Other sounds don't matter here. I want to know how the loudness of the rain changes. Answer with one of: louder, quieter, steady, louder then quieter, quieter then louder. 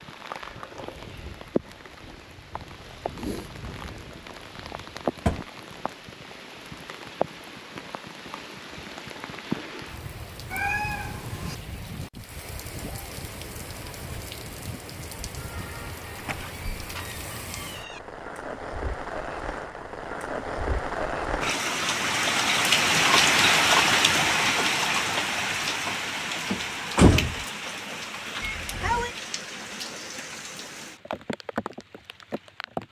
louder then quieter.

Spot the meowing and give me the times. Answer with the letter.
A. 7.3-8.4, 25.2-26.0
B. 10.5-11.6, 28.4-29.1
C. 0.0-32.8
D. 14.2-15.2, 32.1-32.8
B.